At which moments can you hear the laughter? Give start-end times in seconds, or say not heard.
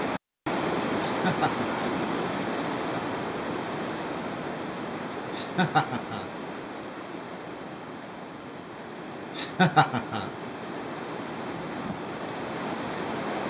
1.1-1.7, 5.3-6.2, 9.3-10.3.